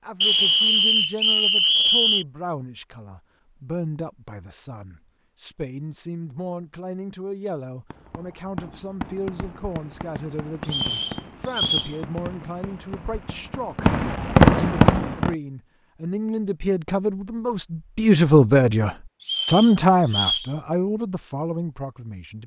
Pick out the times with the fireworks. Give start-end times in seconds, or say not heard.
7.9-15.3.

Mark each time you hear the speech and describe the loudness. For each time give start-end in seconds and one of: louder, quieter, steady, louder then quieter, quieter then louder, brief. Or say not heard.
0.0-22.4 louder.